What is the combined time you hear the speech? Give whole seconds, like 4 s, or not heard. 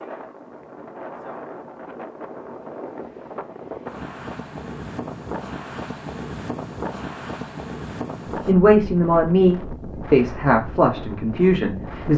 4 s.